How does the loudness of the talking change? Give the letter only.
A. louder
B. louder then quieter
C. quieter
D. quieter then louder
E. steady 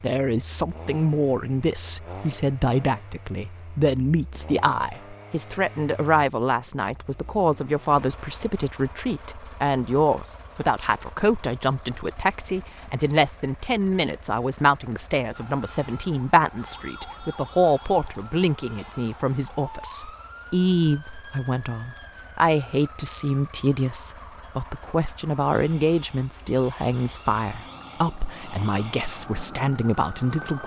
E.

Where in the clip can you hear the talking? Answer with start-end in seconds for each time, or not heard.
0.0-30.6.